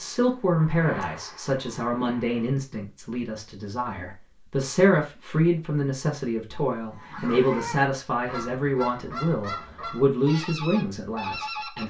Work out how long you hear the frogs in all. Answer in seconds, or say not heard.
not heard.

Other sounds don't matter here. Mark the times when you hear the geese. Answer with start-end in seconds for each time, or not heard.
6.9-11.8.